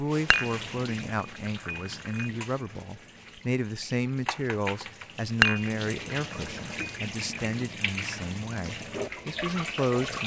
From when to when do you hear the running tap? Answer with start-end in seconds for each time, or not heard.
0.0-10.2.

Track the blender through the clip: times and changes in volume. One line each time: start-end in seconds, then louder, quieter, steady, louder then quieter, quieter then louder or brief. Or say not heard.
not heard.